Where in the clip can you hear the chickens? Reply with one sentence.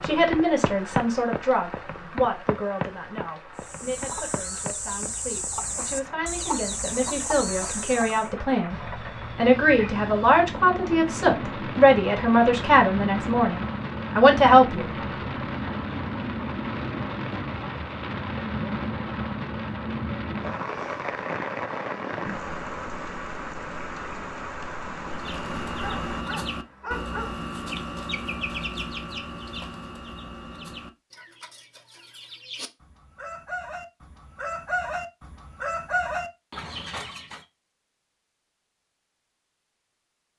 You can hear the chickens from 3.5 to 8.3 s and from 25.1 to 37.5 s.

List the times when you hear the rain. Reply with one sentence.
The rain can be heard from 0.0 to 26.2 s.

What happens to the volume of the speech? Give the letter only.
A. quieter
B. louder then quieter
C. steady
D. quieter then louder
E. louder
D.